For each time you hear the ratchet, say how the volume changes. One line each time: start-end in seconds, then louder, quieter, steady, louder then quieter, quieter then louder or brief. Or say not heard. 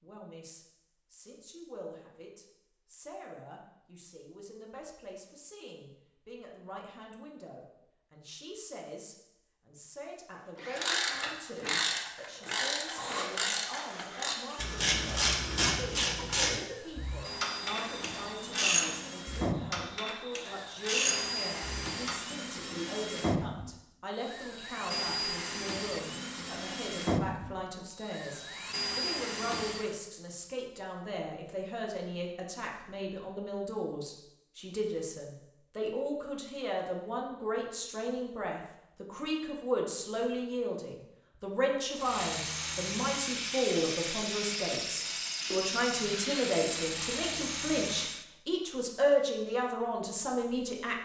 10.7-22.2 steady.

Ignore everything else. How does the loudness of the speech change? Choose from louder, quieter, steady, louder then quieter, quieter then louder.
louder.